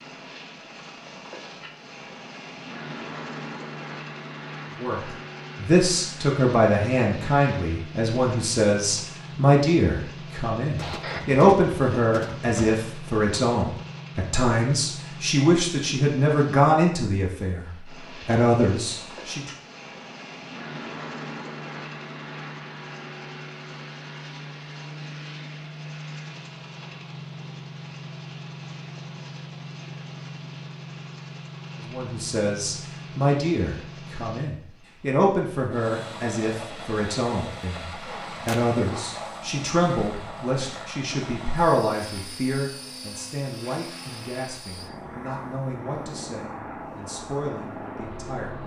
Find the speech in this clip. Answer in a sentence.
You can hear the speech from 4.8 to 17.6 s, from 18.2 to 19.5 s and from 31.8 to 48.6 s.